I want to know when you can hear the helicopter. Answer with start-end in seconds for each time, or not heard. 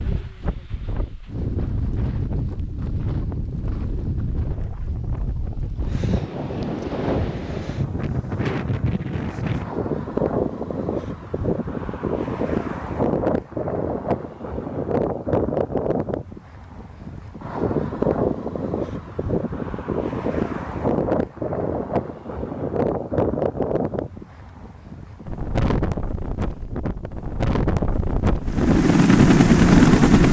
28.4-30.2.